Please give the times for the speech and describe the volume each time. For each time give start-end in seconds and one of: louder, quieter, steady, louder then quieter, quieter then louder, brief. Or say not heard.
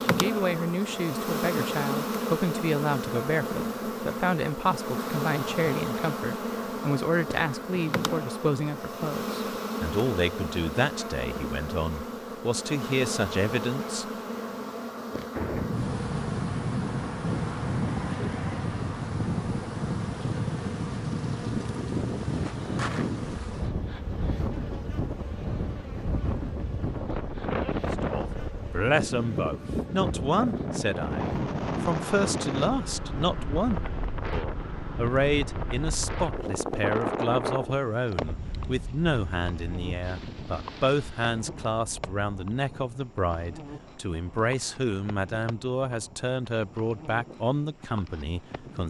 0.0-14.1 steady
28.0-48.8 steady.